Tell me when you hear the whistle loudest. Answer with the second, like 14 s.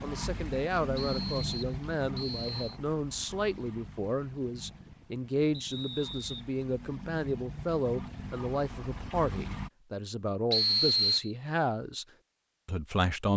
11 s.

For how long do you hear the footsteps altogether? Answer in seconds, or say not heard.
not heard.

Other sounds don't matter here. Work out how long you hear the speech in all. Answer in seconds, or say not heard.
13 s.